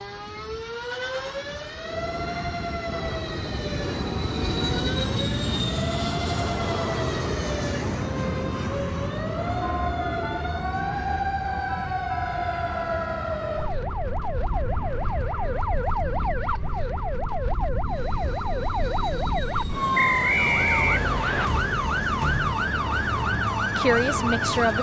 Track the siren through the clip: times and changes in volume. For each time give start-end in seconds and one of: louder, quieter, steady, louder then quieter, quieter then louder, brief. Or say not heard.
0.0-24.7 louder.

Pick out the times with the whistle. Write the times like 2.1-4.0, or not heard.
19.9-21.5.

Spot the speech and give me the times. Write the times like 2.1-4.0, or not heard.
23.8-24.7.